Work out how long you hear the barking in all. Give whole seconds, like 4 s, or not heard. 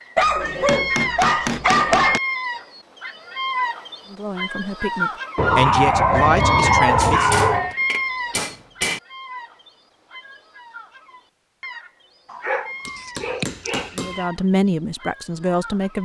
6 s.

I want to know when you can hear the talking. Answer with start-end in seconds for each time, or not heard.
4.1-7.3, 13.9-16.0.